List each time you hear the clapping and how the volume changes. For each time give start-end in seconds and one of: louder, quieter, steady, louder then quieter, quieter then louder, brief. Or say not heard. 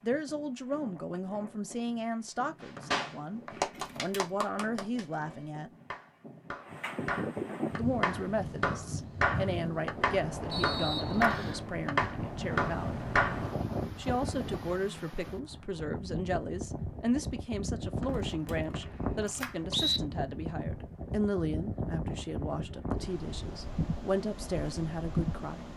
2.6-13.4 quieter then louder.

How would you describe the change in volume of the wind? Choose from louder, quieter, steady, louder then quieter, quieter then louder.
louder.